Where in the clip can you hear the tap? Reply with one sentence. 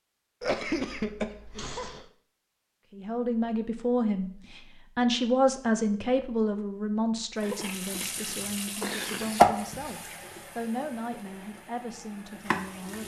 You can hear the tap from 7.4 to 13.0 s.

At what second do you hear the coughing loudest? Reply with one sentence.
The loudest moment of the coughing is at 1 second.